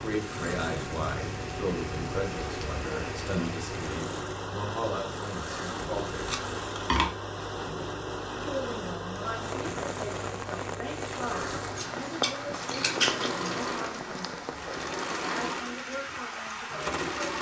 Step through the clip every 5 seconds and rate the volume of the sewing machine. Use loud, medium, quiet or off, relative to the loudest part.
medium, medium, loud, loud.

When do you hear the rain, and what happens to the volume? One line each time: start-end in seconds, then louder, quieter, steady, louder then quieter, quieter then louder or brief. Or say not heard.
0.0-17.3 steady.